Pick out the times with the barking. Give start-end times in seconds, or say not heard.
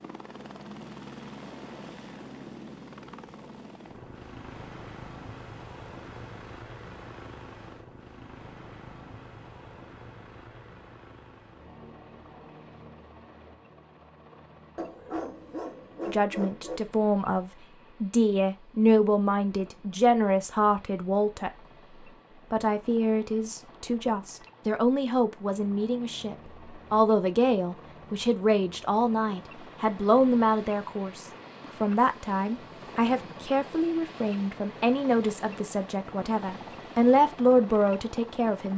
14.8-16.8.